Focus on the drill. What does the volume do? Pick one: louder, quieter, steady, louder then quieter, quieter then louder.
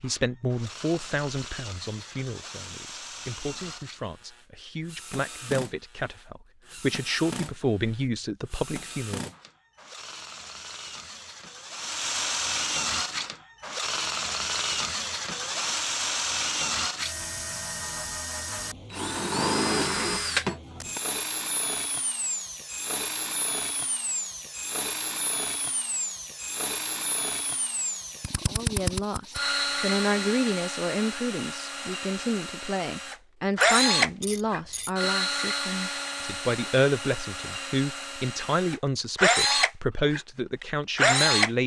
louder.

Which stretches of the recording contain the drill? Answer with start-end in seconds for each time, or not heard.
0.0-41.5.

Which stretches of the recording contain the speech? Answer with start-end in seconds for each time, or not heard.
0.0-9.3, 28.4-41.6.